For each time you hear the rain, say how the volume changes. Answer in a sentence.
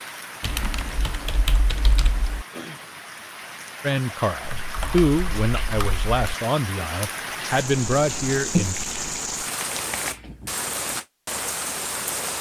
The rain can be heard from 0.0 to 12.3 s, getting louder.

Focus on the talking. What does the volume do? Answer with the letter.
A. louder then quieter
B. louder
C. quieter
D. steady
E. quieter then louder
E.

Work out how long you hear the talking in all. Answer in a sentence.
You can hear the talking for 5 seconds altogether.